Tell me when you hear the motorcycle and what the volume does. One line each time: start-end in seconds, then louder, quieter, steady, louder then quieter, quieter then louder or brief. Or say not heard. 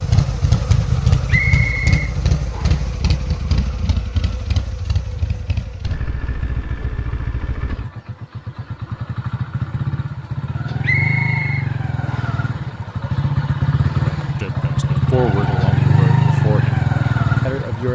0.0-17.8 quieter then louder.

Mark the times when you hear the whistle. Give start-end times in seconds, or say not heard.
1.2-2.9, 10.8-12.4.